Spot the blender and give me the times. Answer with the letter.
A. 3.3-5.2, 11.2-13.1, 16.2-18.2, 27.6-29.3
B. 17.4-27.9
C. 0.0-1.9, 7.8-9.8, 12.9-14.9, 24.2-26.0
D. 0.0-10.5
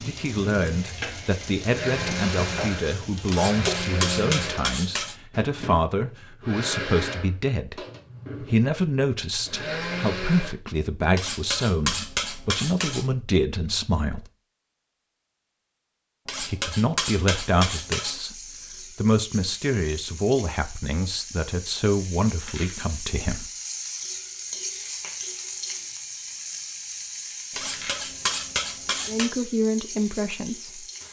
D.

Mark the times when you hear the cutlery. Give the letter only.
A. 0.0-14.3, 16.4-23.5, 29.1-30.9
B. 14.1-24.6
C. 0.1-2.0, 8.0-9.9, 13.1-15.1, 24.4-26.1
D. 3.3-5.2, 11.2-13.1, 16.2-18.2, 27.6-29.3
D.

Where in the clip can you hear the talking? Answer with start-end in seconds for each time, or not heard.
0.0-14.3, 16.4-23.5, 29.1-30.9.